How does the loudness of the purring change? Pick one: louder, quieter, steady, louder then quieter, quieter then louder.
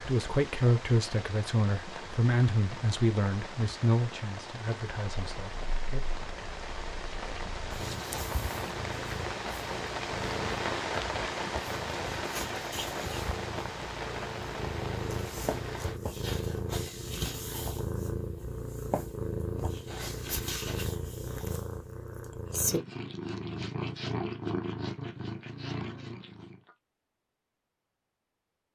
louder.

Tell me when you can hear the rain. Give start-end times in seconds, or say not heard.
0.0-16.0.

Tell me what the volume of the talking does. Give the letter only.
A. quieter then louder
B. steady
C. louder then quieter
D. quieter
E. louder
D.